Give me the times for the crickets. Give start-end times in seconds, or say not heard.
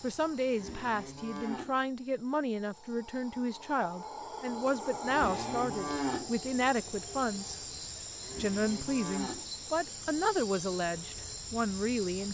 0.0-12.2.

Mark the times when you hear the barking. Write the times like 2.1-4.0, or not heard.
not heard.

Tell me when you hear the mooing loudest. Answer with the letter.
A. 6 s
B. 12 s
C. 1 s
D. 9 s
A.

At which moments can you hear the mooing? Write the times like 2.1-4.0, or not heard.
0.5-1.8, 5.0-6.3, 8.2-9.5.